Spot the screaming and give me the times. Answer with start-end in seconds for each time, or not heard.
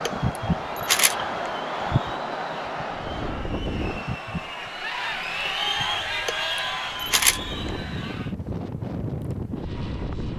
not heard.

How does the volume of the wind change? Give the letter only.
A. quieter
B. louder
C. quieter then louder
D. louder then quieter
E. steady
C.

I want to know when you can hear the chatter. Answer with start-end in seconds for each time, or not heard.
0.1-8.3.